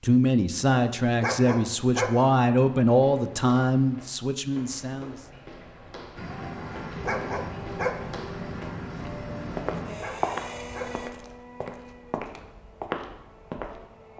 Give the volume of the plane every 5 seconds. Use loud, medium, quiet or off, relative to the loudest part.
off, loud, medium.